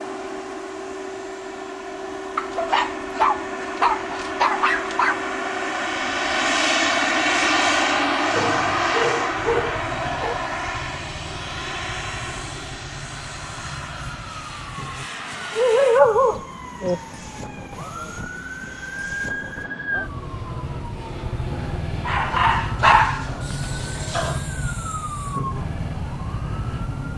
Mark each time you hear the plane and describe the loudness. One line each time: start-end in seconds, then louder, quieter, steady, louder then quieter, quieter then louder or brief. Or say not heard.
0.0-27.1 louder then quieter.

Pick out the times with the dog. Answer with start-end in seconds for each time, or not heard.
2.4-5.3, 8.3-10.3, 15.6-17.0, 22.1-24.4.